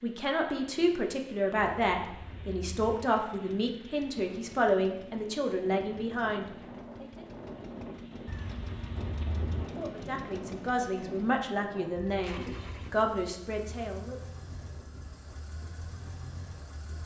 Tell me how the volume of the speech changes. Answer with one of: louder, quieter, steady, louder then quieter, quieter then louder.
steady.